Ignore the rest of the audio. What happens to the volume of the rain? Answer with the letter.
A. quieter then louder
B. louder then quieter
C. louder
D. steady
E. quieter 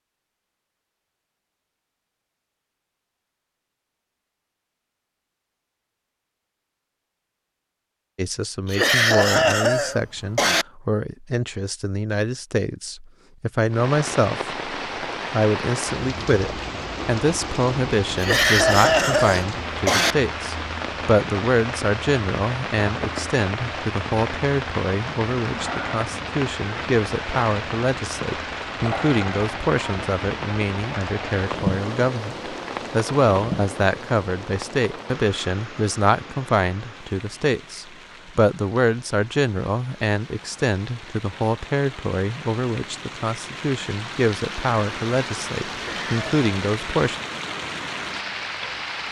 A.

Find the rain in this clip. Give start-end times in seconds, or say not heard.
13.7-49.0.